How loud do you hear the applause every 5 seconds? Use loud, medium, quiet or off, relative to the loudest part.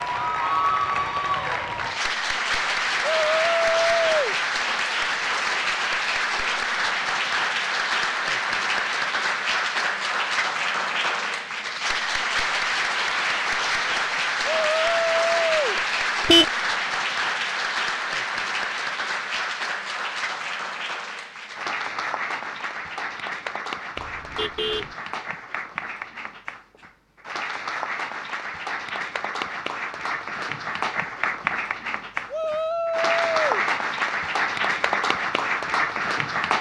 loud, loud, loud, loud, medium, medium, loud, loud.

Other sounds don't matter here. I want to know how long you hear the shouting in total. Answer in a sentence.
You can hear the shouting for 4 seconds altogether.